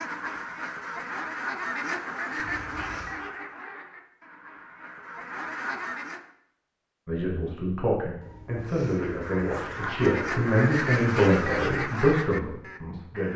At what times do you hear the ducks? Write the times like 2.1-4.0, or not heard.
0.0-6.3, 8.7-13.3.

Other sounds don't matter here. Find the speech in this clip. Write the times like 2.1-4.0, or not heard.
7.0-13.3.